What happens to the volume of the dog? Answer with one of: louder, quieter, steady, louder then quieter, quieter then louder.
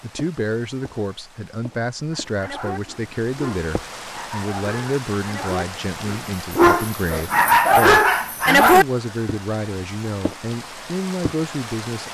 louder.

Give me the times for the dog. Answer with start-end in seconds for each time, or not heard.
2.1-8.8.